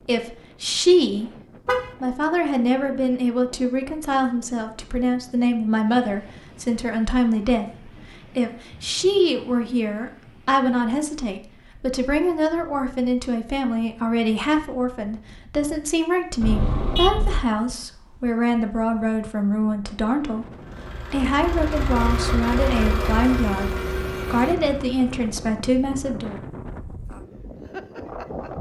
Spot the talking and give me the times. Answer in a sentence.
The talking can be heard from 0.1 to 1.3 s and from 2.0 to 26.4 s.